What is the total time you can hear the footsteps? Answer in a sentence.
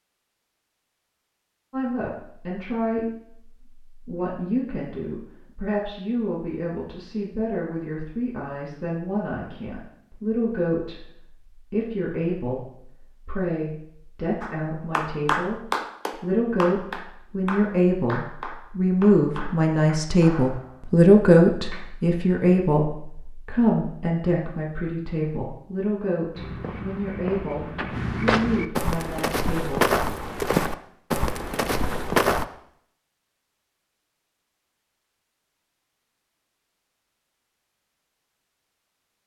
You can hear the footsteps for 6 seconds altogether.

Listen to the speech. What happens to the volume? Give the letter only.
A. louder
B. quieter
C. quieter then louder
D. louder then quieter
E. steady
D.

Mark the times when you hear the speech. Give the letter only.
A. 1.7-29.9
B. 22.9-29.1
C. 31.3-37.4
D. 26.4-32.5
A.